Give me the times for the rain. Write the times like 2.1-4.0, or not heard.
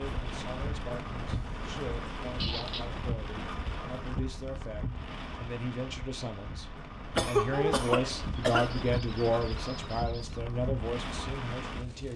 0.0-12.1.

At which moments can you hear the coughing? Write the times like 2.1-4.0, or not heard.
7.2-9.0.